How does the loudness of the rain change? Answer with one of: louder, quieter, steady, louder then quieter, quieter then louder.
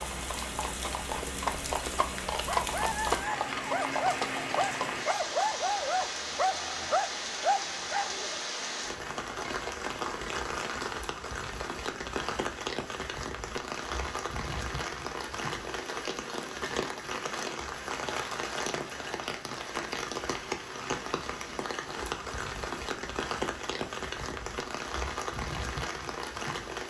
steady.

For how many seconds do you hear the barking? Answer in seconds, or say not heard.
6 s.